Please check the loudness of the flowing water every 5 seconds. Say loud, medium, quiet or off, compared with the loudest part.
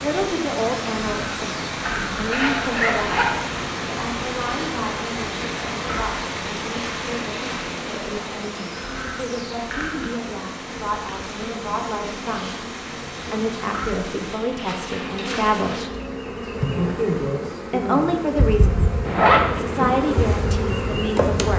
loud, loud, medium, off, off.